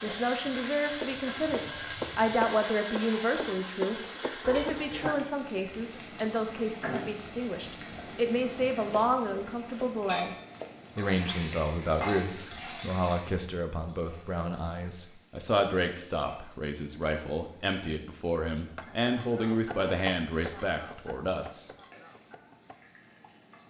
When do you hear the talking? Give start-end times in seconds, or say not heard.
0.0-10.3, 10.9-21.7.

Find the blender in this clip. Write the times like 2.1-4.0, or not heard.
not heard.